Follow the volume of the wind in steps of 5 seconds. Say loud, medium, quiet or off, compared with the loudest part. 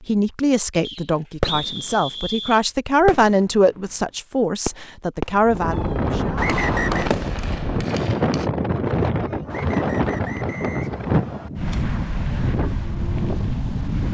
off, loud, loud.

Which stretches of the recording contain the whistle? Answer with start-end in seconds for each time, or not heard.
0.8-2.6, 6.3-7.1, 9.5-11.5.